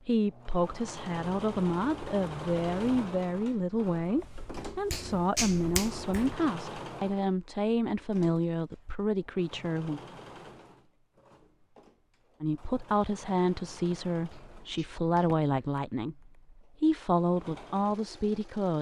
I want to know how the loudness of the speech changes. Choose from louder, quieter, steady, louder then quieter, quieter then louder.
steady.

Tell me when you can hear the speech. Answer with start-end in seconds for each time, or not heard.
0.1-10.0, 12.4-18.7.